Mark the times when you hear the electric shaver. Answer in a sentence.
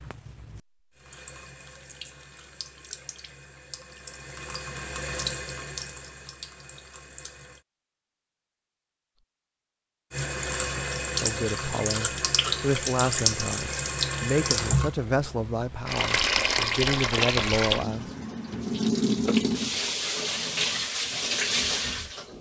The electric shaver can't be heard in this clip.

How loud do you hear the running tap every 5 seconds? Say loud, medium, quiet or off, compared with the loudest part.
quiet, medium, loud, loud, loud.